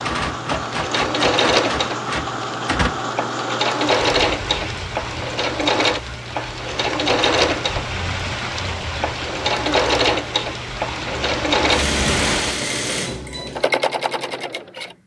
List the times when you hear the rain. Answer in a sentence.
You can hear the rain from 0.0 to 12.6 s.